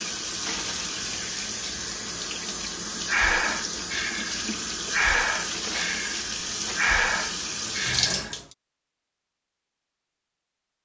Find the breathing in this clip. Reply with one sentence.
The breathing can be heard from 3.0 to 8.3 s.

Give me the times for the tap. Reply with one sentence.
The tap can be heard from 0.0 to 8.6 s.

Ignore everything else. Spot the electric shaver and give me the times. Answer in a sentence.
The electric shaver can't be heard in this clip.